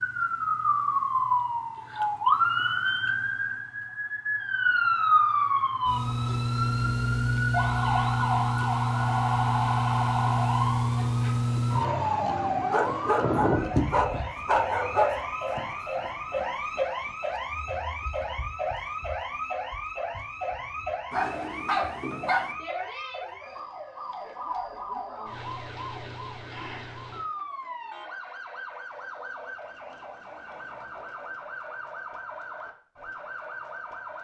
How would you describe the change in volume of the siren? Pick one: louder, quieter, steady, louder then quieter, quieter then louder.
quieter.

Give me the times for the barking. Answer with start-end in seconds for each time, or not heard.
12.7-15.1, 21.1-22.5.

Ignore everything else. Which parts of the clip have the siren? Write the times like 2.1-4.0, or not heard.
0.0-34.1.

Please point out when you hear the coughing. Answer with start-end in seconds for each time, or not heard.
not heard.